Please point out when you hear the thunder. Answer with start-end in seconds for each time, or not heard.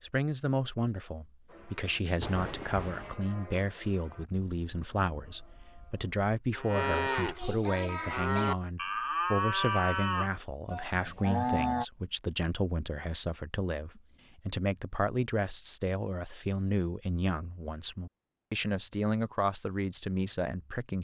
2.2-3.1.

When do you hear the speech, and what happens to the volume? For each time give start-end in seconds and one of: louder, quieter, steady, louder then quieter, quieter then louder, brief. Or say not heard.
0.0-20.9 steady.